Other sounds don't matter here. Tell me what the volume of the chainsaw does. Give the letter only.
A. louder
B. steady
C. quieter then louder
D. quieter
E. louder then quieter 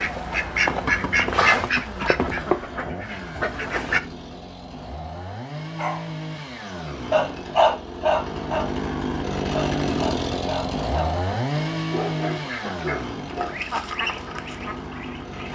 E.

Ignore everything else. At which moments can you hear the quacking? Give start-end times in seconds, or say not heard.
0.0-4.0, 12.3-15.5.